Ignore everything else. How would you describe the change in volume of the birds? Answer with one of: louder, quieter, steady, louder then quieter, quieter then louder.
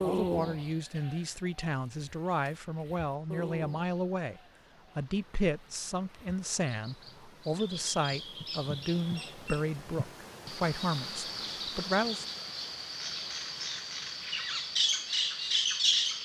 quieter then louder.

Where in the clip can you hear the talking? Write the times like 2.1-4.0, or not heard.
0.0-12.2.